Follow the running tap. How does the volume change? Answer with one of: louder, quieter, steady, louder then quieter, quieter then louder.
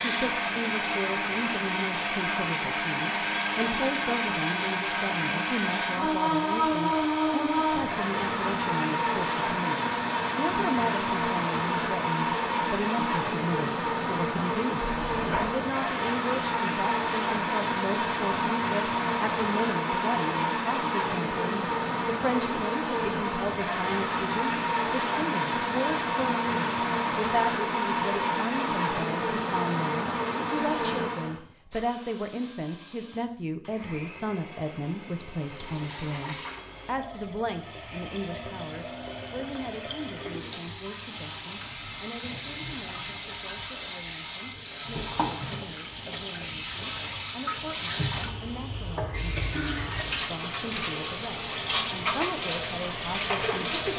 louder.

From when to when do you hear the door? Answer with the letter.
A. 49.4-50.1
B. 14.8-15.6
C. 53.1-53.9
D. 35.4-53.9
B.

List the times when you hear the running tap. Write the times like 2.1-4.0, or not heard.
35.4-53.9.